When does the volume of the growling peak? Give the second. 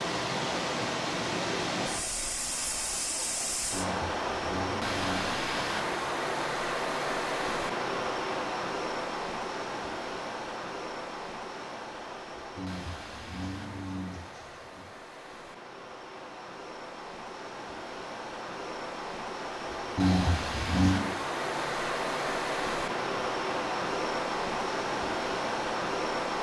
20 s.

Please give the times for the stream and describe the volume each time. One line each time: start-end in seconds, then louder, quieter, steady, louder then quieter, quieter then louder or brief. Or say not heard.
0.0-26.3 quieter then louder.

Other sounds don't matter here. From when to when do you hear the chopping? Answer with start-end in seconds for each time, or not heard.
not heard.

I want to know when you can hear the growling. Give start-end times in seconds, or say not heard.
3.7-5.3, 12.6-14.9, 19.9-21.0.